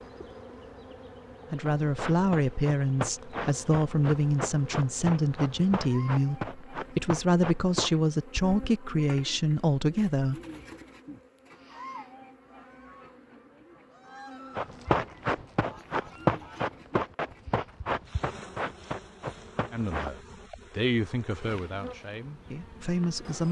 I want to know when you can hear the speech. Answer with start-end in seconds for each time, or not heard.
1.5-10.3, 19.7-23.4.